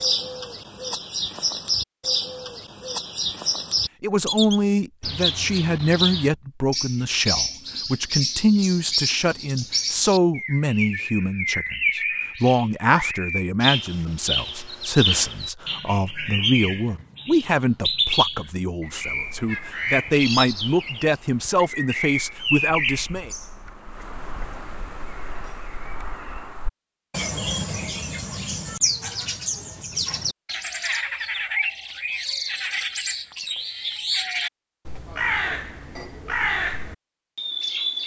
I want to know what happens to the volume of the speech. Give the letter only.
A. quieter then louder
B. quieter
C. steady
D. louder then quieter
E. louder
C.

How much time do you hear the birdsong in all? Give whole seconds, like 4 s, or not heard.
38 s.